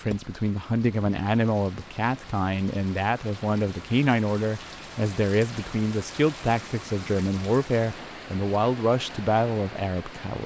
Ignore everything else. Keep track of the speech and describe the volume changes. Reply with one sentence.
The loudness of the speech stays about the same.